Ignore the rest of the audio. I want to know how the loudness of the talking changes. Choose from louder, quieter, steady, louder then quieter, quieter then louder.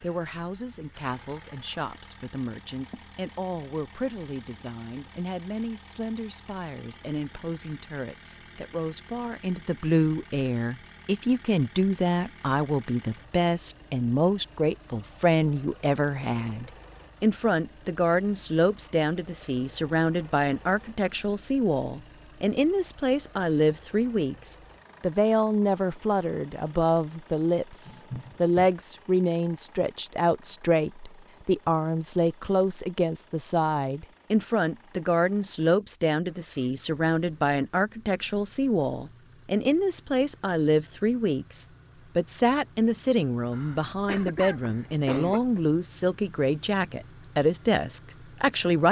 louder.